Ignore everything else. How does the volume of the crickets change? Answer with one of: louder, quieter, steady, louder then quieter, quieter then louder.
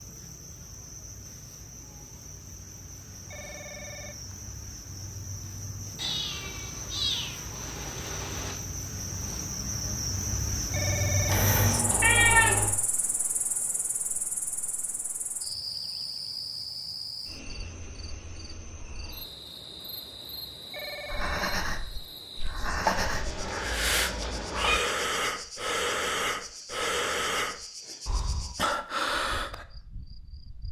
louder then quieter.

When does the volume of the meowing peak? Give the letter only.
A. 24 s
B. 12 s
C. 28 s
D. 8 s
B.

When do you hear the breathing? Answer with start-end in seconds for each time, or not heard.
21.1-29.6.